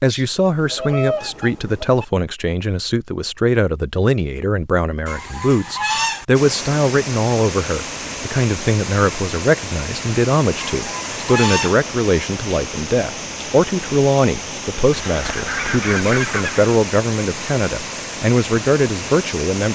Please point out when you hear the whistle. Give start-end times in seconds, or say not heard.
not heard.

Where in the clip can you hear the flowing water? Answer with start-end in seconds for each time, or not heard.
6.3-19.7.